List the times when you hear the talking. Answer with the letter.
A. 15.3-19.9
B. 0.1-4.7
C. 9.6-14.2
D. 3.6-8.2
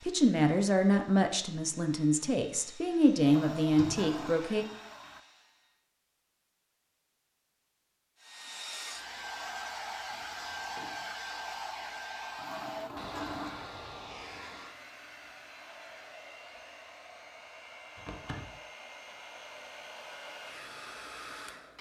B.